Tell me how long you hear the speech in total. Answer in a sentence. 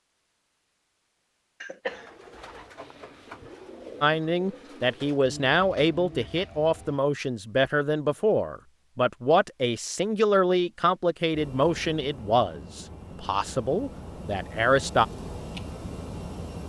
You can hear the speech for 11 seconds altogether.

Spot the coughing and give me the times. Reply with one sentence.
The coughing can be heard from 1.6 to 2.0 s.